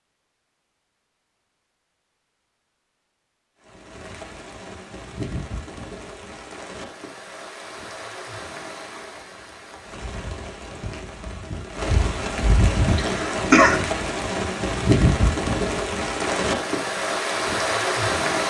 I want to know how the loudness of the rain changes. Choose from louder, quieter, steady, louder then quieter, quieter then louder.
louder.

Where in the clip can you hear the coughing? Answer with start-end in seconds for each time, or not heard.
12.9-13.8.